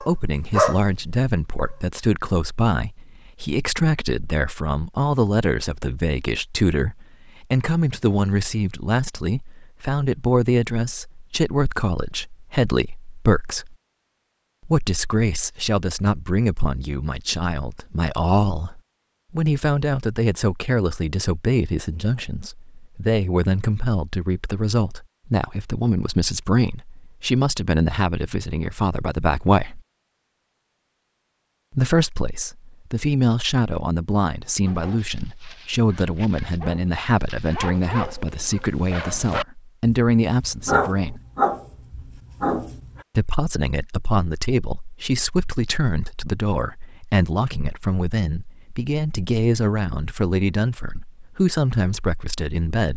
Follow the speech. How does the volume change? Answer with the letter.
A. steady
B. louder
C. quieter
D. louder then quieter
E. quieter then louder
A.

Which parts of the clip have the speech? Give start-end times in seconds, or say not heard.
0.0-13.8, 14.7-29.8, 31.7-41.2, 43.1-52.9.